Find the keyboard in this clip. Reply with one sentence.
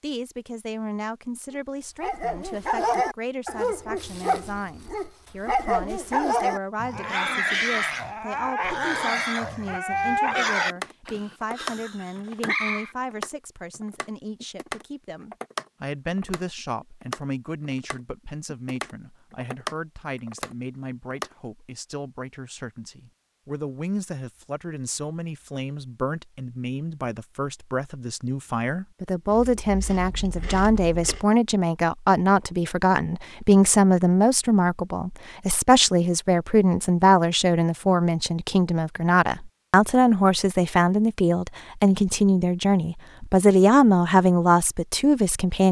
You can hear the keyboard from 10.7 to 21.3 s.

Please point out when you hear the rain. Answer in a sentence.
The rain can't be heard in this clip.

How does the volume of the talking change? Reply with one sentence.
The loudness of the talking goes up.